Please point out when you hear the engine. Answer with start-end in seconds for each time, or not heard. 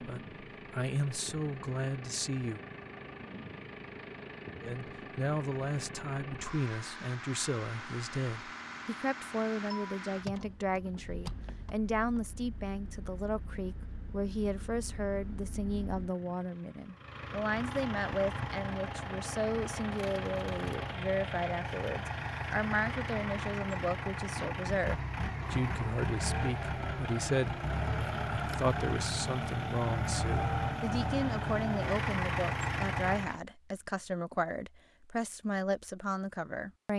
0.0-33.4.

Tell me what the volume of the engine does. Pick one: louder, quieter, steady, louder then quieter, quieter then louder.
louder.